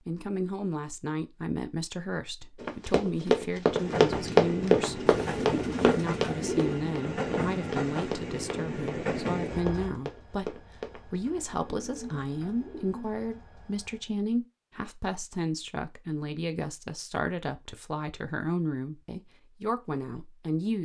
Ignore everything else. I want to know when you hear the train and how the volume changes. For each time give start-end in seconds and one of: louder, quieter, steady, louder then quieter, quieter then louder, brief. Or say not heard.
3.7-14.2 quieter.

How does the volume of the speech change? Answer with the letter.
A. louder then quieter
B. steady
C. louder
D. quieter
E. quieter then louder
B.